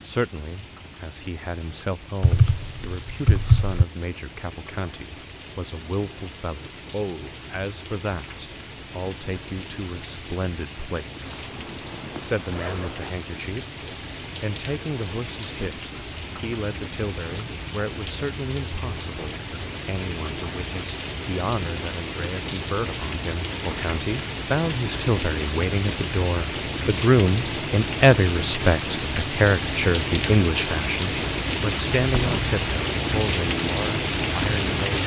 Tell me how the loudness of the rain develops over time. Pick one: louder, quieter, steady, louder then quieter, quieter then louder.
louder.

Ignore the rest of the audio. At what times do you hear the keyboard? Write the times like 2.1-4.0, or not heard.
2.2-3.9.